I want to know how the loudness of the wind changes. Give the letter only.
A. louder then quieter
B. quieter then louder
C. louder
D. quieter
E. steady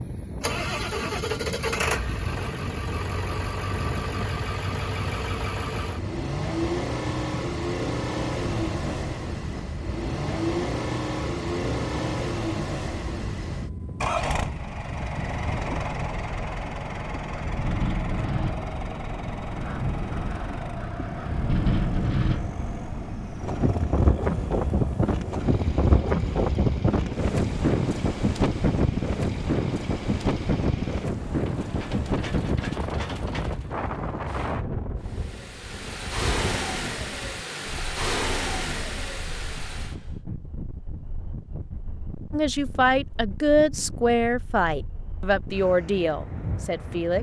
A.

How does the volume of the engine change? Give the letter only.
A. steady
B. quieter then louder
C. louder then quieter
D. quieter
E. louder
B.